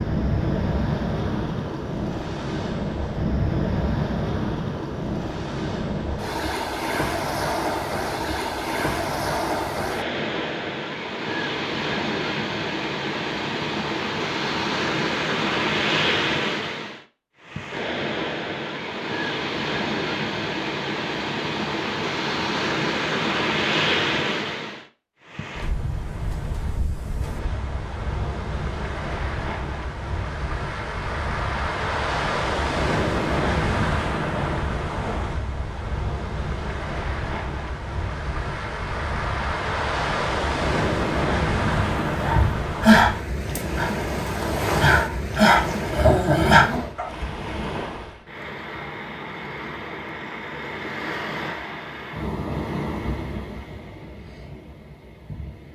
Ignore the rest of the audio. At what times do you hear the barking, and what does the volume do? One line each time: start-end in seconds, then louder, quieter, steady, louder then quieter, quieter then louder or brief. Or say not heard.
41.6-47.0 quieter then louder.